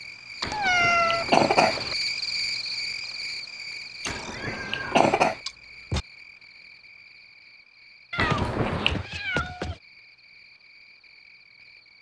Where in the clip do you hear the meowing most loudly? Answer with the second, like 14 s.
1 s.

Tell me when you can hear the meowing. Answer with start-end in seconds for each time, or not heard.
0.4-1.2, 4.0-6.0, 8.1-9.8.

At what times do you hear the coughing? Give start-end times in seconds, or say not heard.
0.4-1.9, 4.0-5.3, 8.2-9.1.